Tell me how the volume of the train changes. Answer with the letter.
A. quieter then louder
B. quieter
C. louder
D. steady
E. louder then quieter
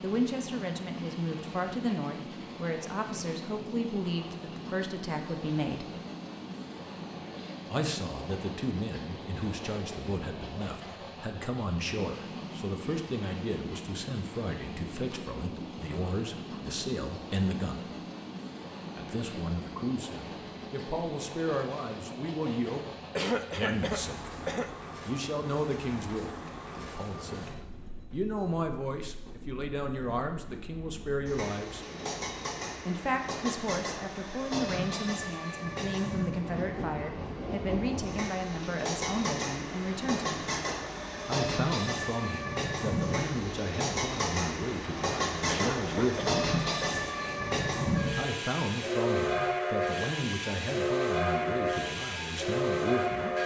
C.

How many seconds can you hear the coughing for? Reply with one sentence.
The coughing can be heard for 3 seconds in total.